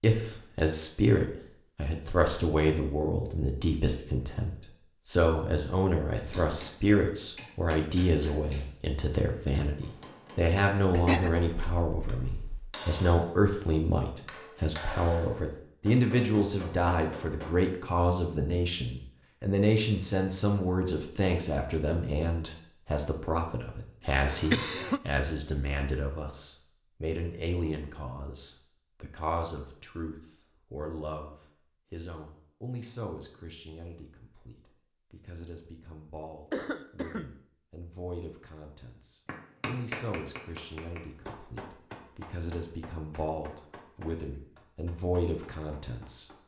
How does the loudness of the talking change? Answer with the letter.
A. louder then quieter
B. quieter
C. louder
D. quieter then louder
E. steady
B.